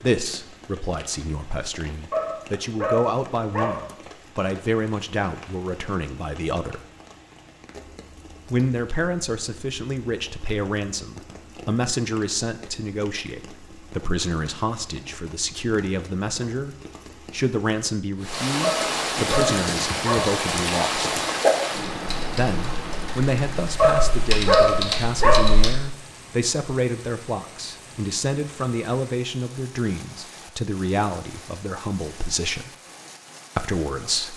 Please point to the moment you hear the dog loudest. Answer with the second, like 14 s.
25 s.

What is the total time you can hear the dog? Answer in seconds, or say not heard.
5 s.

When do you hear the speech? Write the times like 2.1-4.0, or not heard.
0.0-6.8, 8.4-21.1, 22.3-32.7, 33.5-34.3.